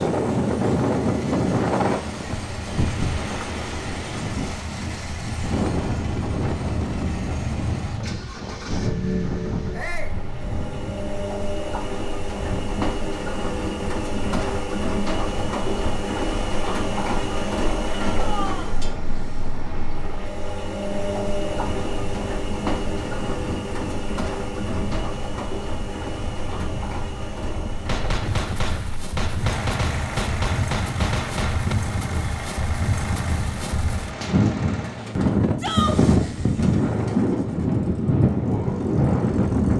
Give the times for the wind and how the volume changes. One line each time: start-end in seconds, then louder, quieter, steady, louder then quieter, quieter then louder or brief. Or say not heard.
0.0-39.7 quieter then louder.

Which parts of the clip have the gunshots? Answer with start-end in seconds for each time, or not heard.
27.9-31.8.